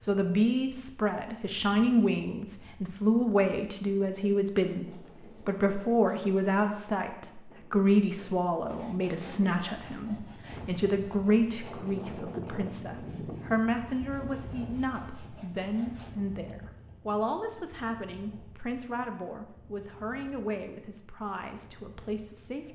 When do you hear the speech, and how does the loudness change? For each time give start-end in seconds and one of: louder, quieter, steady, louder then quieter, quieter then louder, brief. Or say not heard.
0.0-22.7 quieter.